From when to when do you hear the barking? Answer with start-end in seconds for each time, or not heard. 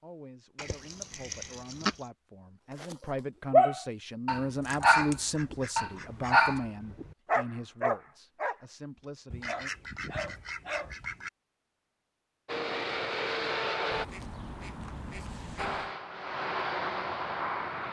2.8-8.6, 9.4-10.9.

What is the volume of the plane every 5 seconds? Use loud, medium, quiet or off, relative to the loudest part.
off, off, loud, loud.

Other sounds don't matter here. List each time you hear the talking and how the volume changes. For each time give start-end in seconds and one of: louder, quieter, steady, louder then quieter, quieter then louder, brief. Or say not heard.
0.0-9.7 louder then quieter.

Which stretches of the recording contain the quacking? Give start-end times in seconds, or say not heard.
0.6-1.9, 4.7-6.6, 9.3-11.3, 13.9-15.9.